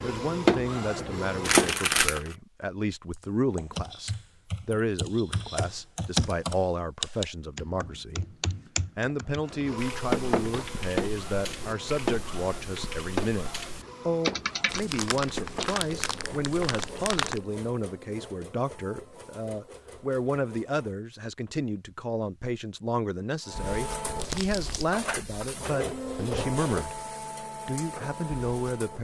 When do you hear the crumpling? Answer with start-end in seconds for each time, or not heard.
1.4-2.4, 14.7-17.4, 24.1-24.9.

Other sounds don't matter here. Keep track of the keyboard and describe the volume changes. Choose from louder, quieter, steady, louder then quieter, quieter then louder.
louder then quieter.